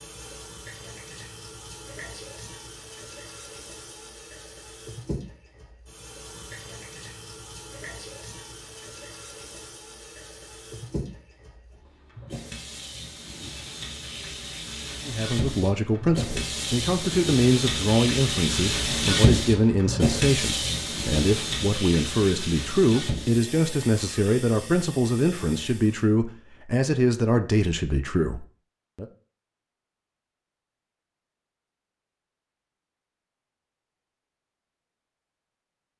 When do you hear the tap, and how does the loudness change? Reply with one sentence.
The tap can be heard from 0.0 to 26.1 s, getting louder then quieter.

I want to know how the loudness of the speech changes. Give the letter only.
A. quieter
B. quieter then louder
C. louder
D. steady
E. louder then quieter
D.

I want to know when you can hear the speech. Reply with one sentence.
You can hear the speech from 15.1 to 29.1 s.